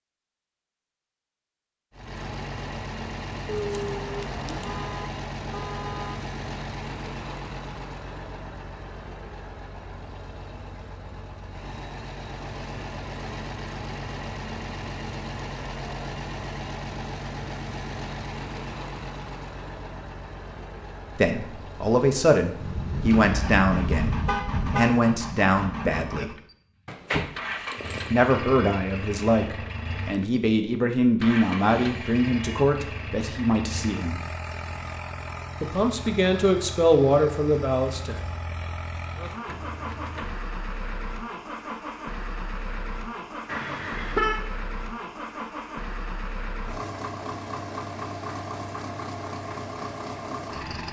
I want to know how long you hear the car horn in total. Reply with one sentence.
The car horn can be heard for 5 seconds in total.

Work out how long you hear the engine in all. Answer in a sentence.
The engine can be heard for 49 seconds in total.